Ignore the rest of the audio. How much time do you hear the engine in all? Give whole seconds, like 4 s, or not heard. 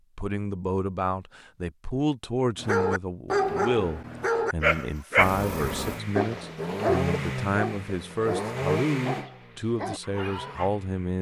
6 s.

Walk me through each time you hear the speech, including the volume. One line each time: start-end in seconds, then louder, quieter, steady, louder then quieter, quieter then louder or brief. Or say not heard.
0.1-11.1 steady.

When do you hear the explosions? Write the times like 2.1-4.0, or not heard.
not heard.